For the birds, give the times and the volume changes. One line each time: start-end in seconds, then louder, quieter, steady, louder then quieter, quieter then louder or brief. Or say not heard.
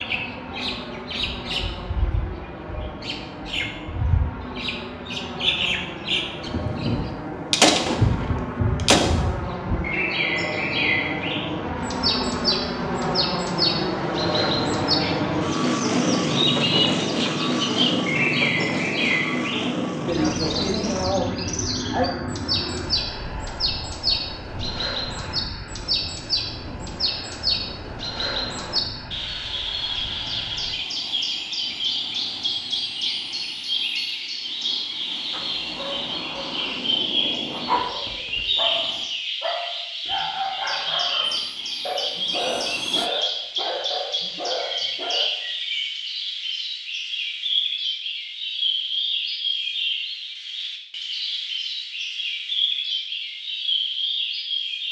0.0-54.8 steady.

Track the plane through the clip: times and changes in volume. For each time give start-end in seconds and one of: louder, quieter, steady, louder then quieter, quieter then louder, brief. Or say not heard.
0.0-39.0 louder then quieter
41.2-43.1 brief.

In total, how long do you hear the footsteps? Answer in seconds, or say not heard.
not heard.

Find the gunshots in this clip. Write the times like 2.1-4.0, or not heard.
7.5-9.1.